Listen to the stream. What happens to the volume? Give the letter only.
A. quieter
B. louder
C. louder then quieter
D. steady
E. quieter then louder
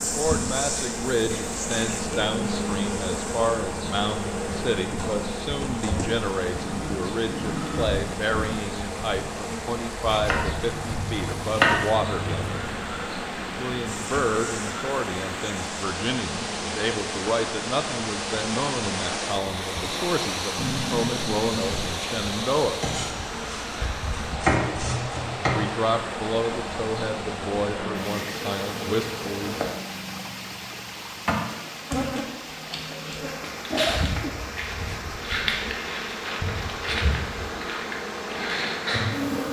C.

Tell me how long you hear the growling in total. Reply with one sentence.
You can hear the growling for 4 seconds altogether.